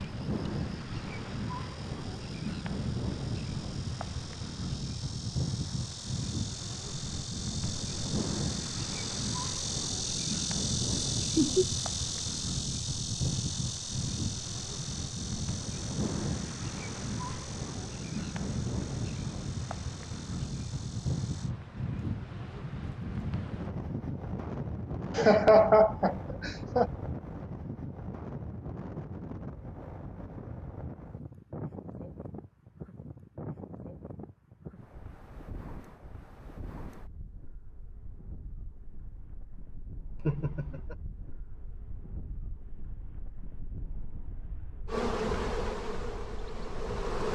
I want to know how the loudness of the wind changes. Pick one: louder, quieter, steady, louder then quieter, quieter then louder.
quieter.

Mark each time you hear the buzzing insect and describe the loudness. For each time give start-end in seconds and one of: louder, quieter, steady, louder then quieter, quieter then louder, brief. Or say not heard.
0.0-21.6 louder then quieter
44.9-47.3 brief.